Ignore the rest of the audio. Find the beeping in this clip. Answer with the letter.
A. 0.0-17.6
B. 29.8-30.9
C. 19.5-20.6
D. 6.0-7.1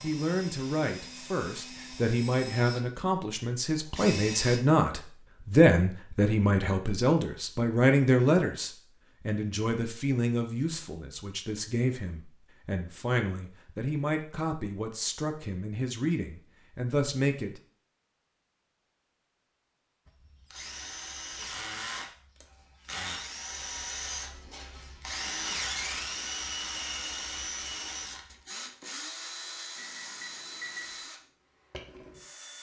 B.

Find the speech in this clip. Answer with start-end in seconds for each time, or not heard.
0.0-17.6.